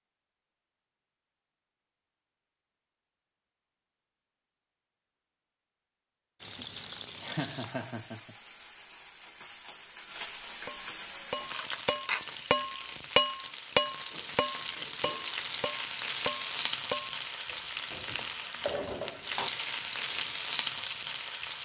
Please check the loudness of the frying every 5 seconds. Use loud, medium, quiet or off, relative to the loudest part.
off, quiet, medium, loud, loud.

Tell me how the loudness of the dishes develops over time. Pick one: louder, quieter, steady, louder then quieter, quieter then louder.
louder then quieter.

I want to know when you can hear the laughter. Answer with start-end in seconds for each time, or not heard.
7.0-8.3.